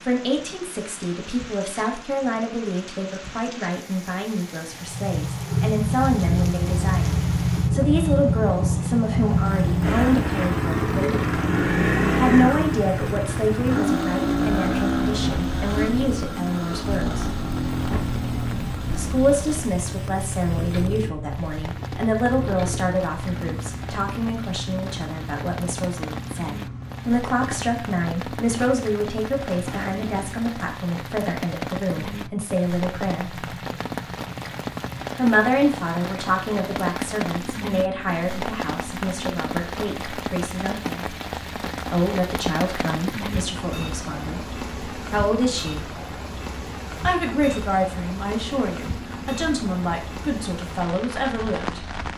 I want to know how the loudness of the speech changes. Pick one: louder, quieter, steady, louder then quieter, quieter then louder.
steady.